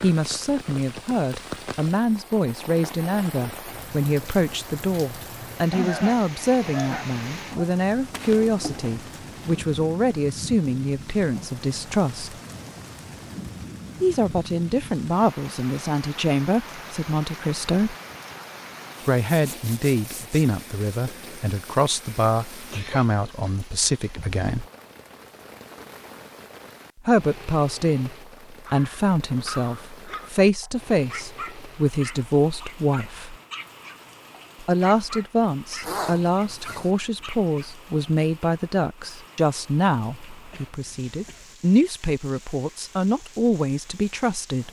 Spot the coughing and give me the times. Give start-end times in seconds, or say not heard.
5.7-7.7, 22.7-23.1, 40.1-41.5.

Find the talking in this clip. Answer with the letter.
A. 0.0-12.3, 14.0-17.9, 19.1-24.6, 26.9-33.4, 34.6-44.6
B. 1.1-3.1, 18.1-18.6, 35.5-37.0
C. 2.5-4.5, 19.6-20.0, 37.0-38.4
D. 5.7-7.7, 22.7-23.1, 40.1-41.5
A.